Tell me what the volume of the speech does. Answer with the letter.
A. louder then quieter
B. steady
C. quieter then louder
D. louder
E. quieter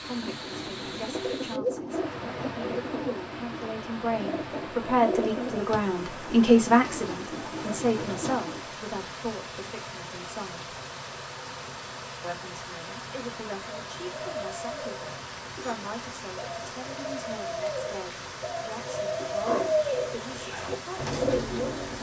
A.